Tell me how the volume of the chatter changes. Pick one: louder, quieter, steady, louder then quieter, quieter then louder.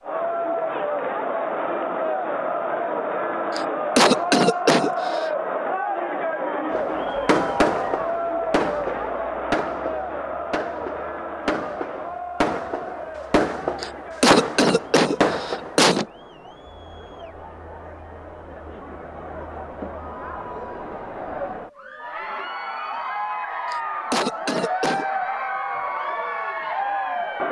quieter then louder.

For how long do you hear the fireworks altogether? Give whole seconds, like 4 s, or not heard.
9 s.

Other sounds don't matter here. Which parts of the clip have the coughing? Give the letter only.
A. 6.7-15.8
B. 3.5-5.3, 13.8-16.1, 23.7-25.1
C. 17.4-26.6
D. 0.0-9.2
B.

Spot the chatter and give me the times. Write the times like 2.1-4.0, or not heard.
0.0-27.4.